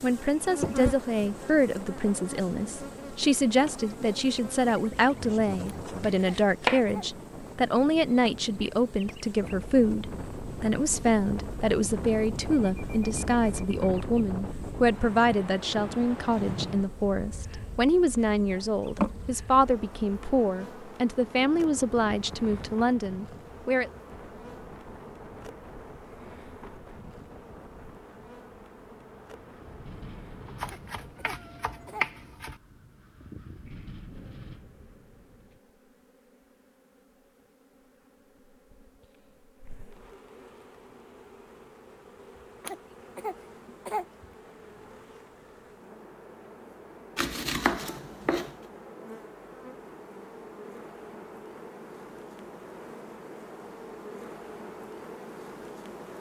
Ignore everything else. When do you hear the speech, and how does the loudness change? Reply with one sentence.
The speech can be heard from 0.0 to 23.9 s, at a steady volume.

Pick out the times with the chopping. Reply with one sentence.
You can hear the chopping from 5.1 to 6.8 s, from 30.6 to 32.6 s and from 47.1 to 48.5 s.